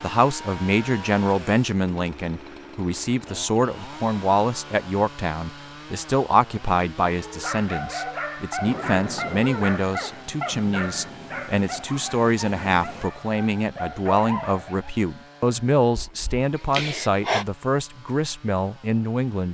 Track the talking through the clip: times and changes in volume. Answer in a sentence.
You can hear the talking from 0.0 to 19.4 s, at a steady volume.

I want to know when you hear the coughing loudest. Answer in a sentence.
The volume of the coughing peaks at 17 seconds.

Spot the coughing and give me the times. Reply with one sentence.
The coughing can be heard from 15.9 to 17.4 s.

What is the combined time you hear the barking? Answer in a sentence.
You can hear the barking for 8 seconds altogether.